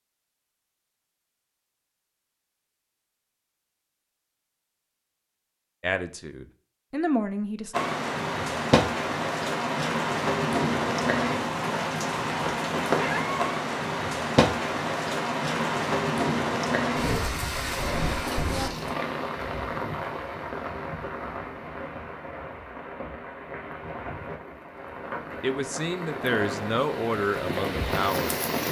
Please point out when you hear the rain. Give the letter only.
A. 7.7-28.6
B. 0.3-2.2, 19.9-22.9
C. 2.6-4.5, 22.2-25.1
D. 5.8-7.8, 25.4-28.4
A.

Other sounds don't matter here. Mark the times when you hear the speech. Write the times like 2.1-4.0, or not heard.
5.8-7.8, 25.4-28.4.